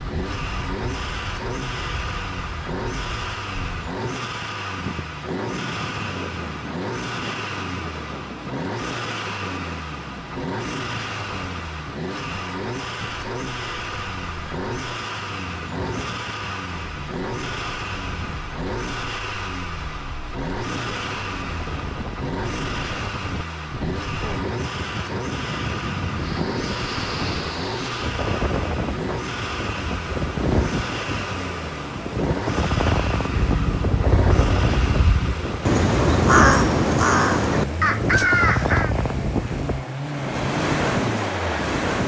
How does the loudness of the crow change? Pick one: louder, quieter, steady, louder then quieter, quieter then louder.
louder.